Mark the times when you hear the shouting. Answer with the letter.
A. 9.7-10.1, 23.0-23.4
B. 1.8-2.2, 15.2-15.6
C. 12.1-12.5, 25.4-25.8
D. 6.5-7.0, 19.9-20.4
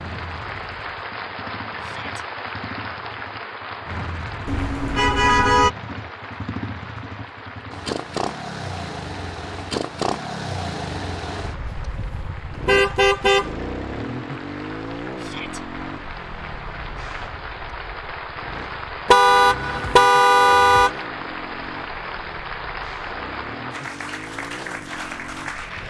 B.